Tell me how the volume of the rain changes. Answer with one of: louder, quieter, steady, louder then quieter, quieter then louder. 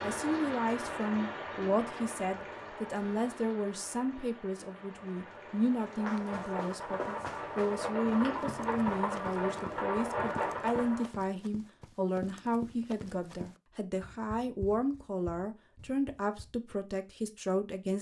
quieter then louder.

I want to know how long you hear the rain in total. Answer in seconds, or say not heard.
11 s.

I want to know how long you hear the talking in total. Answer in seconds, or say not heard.
18 s.